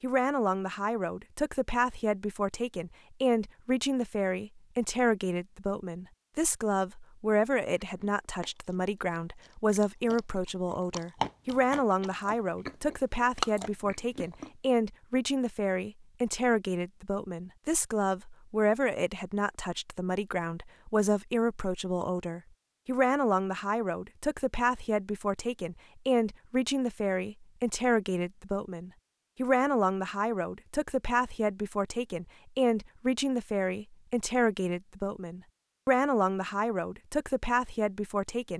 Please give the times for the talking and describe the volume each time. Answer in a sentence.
The talking can be heard from 0.0 to 38.5 s, at a steady volume.